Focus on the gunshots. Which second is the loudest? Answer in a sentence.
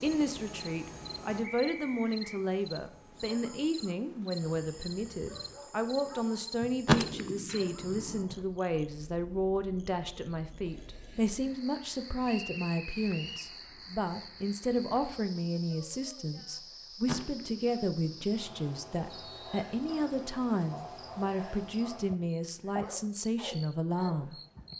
The loudest moment of the gunshots is at 7 seconds.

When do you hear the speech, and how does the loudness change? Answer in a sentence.
The speech can be heard from 0.0 to 24.4 s, at a steady volume.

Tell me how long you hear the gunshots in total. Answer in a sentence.
The gunshots can be heard for 3 seconds in total.